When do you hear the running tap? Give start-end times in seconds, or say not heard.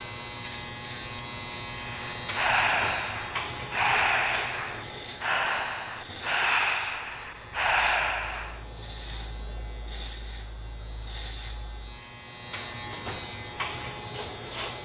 not heard.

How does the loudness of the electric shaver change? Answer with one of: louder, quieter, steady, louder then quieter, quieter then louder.
steady.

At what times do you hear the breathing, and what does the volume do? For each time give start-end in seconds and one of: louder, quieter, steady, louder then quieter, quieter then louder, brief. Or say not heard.
1.8-8.6 steady.